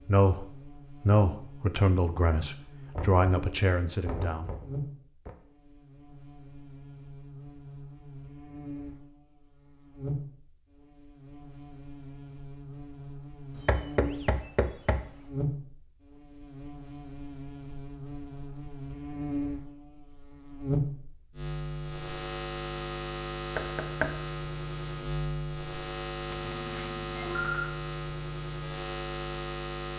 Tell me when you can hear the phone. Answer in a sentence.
You can hear the phone from 26.3 to 27.8 s.